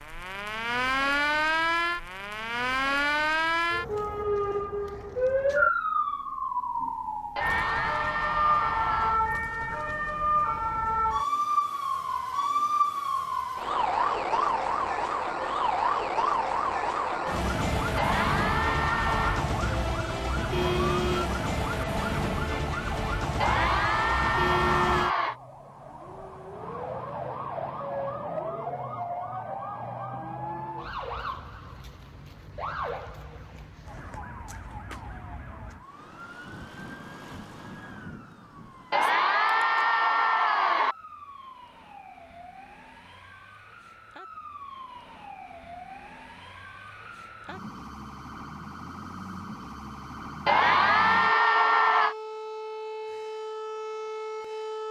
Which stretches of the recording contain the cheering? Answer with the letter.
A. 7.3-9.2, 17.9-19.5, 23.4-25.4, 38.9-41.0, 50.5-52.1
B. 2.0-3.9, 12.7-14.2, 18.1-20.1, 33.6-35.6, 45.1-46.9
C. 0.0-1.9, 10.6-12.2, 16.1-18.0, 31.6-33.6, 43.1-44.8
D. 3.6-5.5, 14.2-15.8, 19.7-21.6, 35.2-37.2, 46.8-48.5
A.